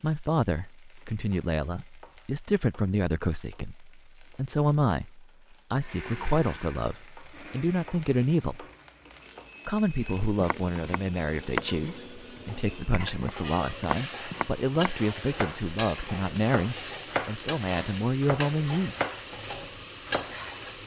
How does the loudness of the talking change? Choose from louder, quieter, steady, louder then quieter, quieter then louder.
steady.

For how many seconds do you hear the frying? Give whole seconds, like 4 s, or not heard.
21 s.